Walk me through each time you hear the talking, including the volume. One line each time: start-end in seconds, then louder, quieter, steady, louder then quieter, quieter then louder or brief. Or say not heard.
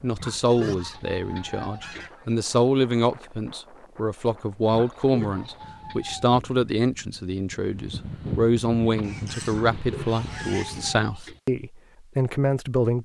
0.0-13.0 steady.